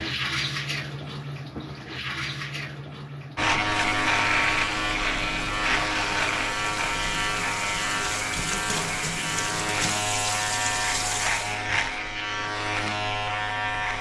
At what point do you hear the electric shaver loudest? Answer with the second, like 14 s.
4 s.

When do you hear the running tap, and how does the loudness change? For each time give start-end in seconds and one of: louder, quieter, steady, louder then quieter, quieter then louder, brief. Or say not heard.
0.0-11.7 quieter then louder.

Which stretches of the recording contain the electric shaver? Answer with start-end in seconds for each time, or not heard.
3.4-13.9.